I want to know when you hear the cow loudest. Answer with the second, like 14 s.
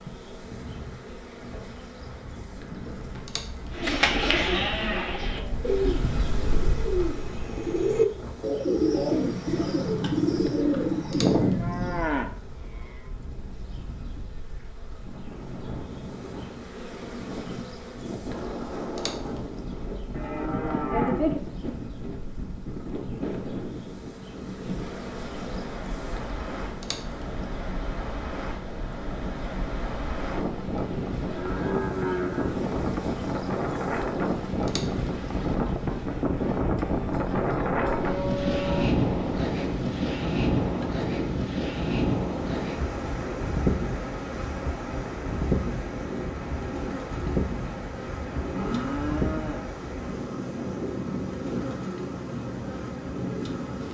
21 s.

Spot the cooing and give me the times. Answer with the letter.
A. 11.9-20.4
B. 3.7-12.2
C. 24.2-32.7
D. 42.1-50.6
B.